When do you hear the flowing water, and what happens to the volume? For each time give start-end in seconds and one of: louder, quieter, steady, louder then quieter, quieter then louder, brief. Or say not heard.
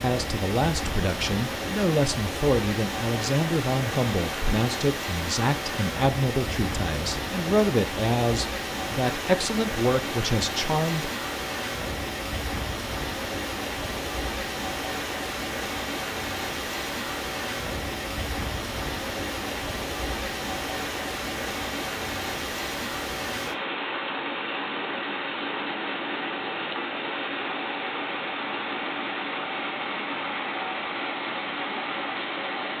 0.0-32.7 steady.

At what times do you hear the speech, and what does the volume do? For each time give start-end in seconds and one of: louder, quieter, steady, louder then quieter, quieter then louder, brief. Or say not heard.
0.0-11.1 steady.